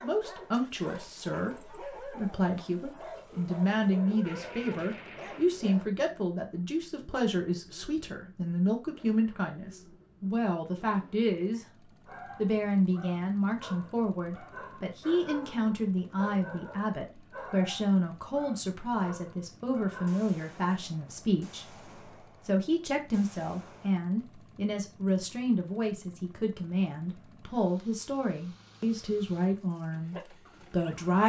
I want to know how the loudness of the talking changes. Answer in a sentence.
The volume of the talking stays about the same.